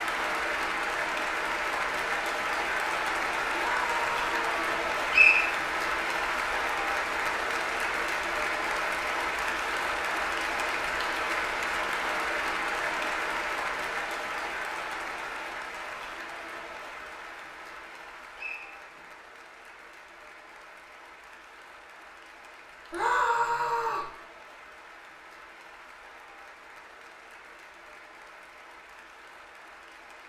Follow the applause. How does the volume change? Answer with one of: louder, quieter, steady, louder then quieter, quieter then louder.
quieter.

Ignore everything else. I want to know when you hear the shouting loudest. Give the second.
23 s.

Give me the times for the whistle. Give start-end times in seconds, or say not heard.
5.1-5.5, 18.4-19.1.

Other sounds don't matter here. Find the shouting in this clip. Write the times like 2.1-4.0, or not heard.
3.5-4.5, 22.9-24.1.